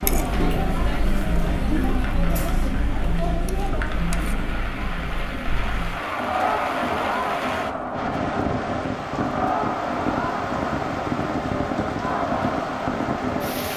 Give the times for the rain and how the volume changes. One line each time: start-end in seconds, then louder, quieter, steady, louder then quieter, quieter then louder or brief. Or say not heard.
0.0-13.7 louder.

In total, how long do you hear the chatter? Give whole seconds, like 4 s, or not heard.
14 s.